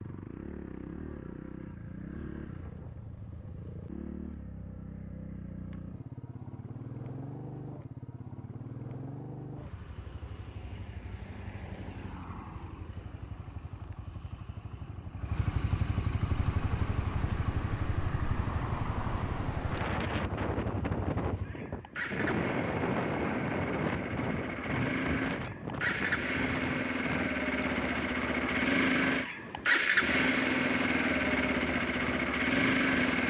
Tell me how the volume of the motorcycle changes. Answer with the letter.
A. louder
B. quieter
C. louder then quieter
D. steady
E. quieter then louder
A.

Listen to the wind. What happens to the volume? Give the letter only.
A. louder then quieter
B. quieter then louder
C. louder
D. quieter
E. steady
A.